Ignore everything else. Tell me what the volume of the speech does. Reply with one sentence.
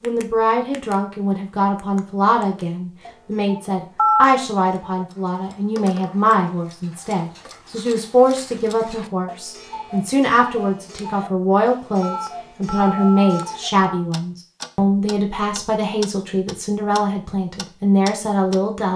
The loudness of the speech stays about the same.